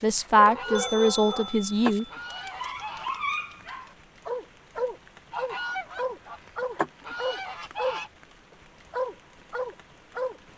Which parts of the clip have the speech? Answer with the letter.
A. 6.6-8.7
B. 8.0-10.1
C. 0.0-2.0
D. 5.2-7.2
C.